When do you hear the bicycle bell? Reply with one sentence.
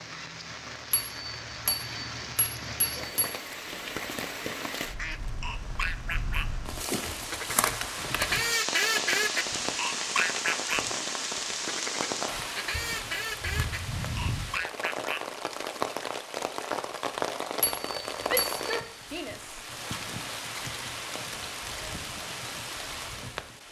The bicycle bell can be heard from 0.9 to 3.4 s and from 17.6 to 18.9 s.